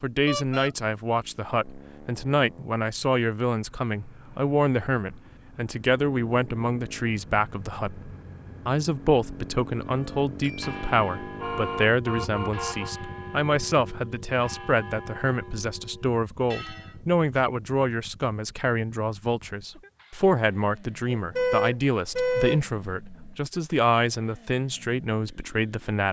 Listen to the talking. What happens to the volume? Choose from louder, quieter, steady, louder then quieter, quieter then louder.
steady.